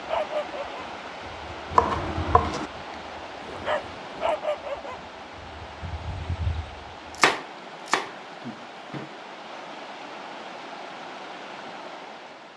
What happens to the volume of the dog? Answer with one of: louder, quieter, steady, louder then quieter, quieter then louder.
louder then quieter.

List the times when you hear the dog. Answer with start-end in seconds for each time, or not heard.
0.0-7.1.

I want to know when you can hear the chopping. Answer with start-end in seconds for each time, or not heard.
1.8-2.7, 7.2-9.1.